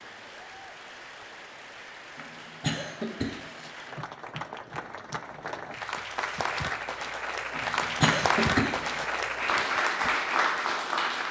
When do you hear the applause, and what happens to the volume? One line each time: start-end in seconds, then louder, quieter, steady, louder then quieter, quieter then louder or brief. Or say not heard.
0.0-11.2 louder.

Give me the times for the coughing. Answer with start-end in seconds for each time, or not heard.
2.1-3.7, 7.5-9.1.